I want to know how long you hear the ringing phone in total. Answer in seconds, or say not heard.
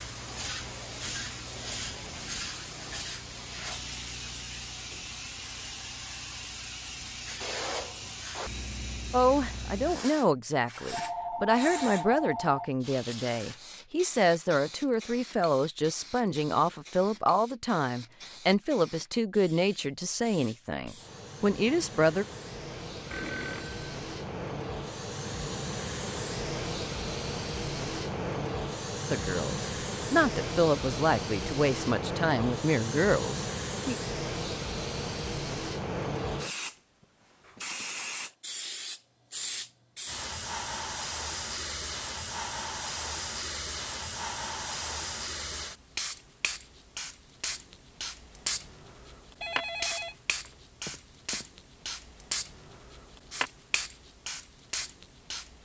5 s.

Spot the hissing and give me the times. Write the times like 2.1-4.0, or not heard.
0.0-55.6.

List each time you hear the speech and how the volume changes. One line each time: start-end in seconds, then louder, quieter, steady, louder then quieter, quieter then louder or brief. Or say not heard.
9.1-22.2 steady
29.1-34.0 steady.